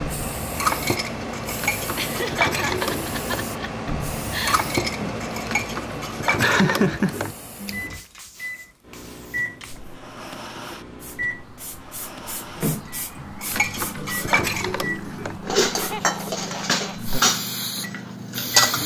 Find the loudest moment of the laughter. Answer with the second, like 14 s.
7 s.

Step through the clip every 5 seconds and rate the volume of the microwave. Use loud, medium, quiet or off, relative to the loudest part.
off, loud, loud, loud.